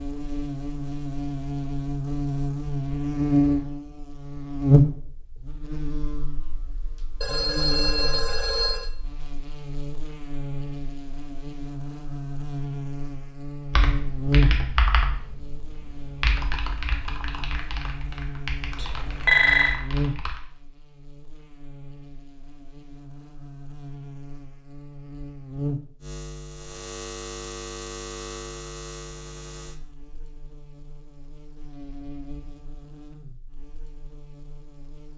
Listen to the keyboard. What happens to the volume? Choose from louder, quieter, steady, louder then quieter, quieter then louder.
quieter.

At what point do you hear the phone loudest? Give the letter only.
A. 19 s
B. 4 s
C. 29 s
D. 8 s
A.